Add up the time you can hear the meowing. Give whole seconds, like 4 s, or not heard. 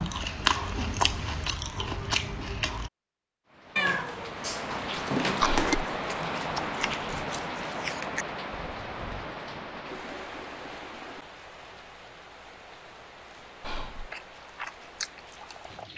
2 s.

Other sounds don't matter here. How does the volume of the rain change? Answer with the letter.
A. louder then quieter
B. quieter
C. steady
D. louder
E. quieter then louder
B.